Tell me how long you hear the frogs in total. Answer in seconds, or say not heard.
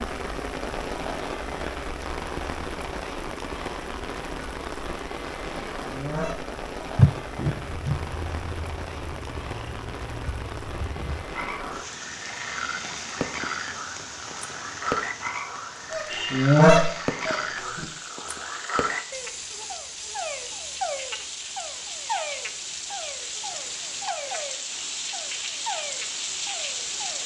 19 s.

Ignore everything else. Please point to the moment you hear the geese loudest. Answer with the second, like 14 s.
17 s.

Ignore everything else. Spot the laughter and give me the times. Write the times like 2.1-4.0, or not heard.
7.0-8.0.